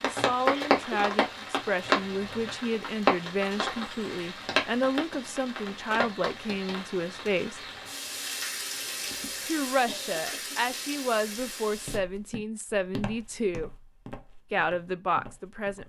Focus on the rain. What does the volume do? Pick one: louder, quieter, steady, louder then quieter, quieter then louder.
quieter.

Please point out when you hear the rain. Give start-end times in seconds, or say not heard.
0.0-12.0.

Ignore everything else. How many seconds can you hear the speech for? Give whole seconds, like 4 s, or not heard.
13 s.